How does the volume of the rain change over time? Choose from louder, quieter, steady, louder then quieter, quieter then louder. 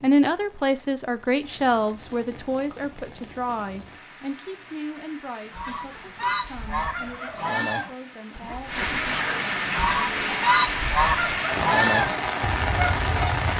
louder.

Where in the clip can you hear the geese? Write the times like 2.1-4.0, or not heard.
5.5-13.5.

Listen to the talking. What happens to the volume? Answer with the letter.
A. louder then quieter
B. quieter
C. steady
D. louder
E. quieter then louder
B.